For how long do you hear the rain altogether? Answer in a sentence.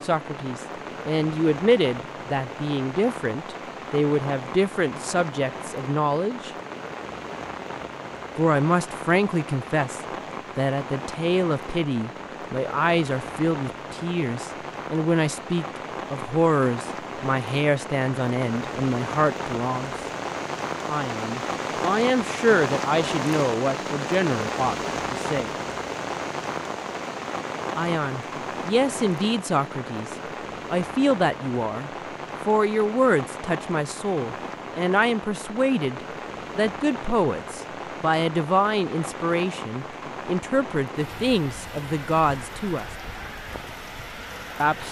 You can hear the rain for 45 seconds altogether.